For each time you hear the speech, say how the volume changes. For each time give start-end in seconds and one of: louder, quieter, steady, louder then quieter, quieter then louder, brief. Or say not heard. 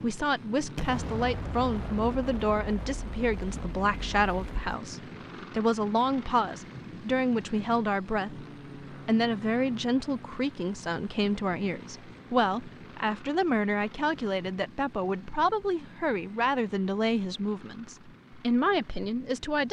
0.0-19.6 steady.